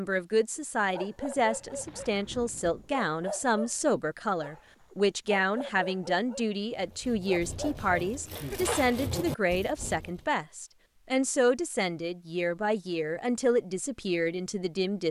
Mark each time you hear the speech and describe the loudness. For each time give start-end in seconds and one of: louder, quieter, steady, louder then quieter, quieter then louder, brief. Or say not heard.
0.0-15.0 steady.